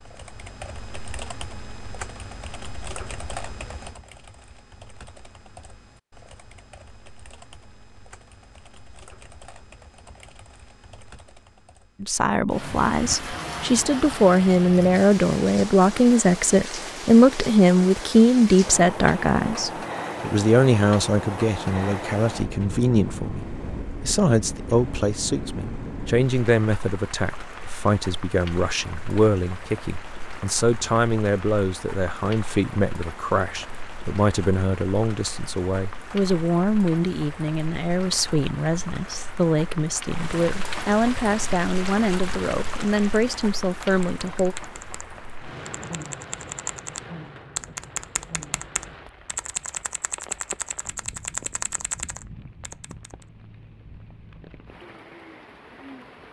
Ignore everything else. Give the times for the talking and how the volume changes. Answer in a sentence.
You can hear the talking from 12.0 to 44.5 s, getting quieter.